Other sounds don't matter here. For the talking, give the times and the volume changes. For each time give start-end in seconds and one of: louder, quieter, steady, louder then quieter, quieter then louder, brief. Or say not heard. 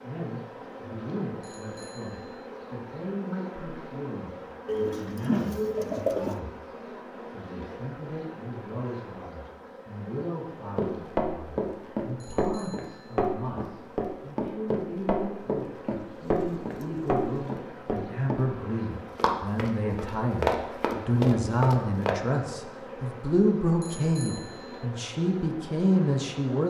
0.0-26.6 louder.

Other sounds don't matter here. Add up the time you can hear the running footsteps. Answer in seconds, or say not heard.
11 s.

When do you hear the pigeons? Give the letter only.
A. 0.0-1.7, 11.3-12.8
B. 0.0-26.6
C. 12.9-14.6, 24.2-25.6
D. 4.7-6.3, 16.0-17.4
D.